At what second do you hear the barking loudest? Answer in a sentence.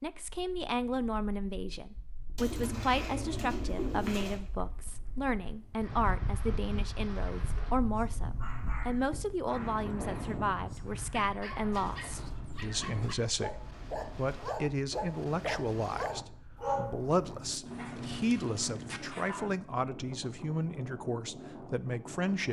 The loudest moment of the barking is at 17 seconds.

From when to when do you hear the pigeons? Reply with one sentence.
The pigeons can be heard from 2.4 to 4.4 s.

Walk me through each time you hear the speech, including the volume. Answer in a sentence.
The speech can be heard from 0.0 to 22.4 s, at a steady volume.